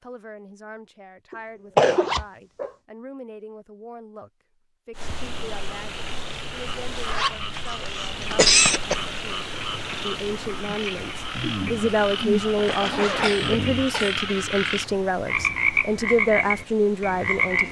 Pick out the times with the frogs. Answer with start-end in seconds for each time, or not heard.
5.0-17.6.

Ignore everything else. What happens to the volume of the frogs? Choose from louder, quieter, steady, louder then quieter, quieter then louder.
louder.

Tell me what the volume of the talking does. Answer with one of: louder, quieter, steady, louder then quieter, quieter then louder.
louder.